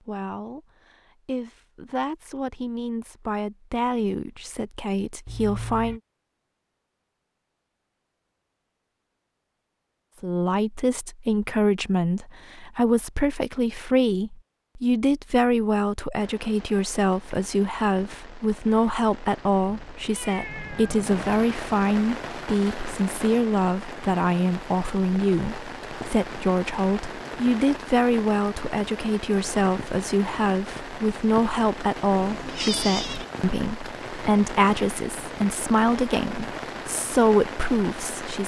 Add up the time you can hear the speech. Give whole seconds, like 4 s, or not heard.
34 s.